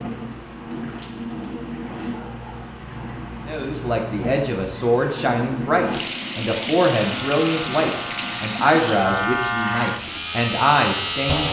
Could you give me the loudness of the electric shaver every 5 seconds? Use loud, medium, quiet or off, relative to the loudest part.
off, loud, loud.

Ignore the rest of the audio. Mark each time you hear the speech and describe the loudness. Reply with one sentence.
You can hear the speech from 3.5 to 11.4 s, at a steady volume.